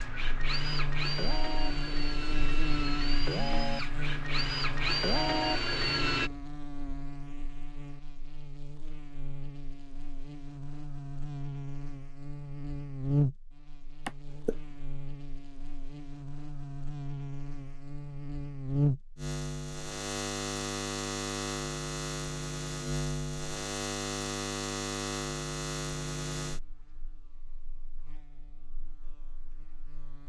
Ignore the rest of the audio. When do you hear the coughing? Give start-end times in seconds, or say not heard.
14.1-14.6.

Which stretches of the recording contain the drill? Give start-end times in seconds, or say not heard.
0.0-6.3.